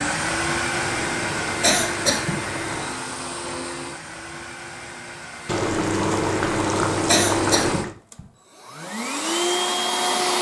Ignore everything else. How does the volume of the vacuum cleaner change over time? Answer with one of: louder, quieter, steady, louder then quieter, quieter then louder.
quieter then louder.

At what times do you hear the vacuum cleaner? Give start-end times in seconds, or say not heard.
0.0-10.3.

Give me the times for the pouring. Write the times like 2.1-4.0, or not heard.
0.7-3.0, 5.5-8.0.